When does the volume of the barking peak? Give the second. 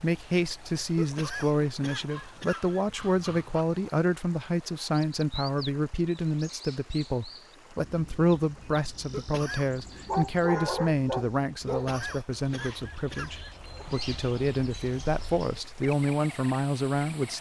11 s.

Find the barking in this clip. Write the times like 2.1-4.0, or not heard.
2.0-3.6, 10.1-11.9.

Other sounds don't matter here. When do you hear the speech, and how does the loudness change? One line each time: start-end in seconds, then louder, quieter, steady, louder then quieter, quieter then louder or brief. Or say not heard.
0.0-17.3 steady.